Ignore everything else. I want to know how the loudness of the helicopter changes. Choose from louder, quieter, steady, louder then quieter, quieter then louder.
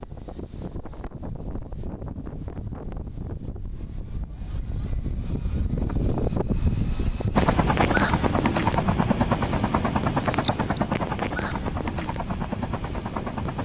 quieter.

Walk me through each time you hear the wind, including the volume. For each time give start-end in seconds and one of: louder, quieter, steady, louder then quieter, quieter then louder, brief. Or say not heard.
0.0-13.6 louder then quieter.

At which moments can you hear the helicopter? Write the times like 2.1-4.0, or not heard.
7.3-13.6.